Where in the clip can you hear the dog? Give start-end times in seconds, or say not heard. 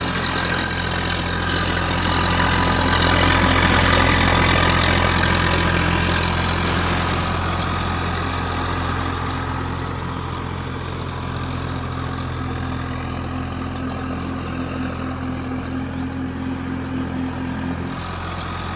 not heard.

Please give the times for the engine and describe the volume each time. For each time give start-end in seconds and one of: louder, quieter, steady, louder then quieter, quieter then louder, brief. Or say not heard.
0.0-18.7 quieter.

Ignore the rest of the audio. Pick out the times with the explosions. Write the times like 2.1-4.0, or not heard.
6.6-7.3.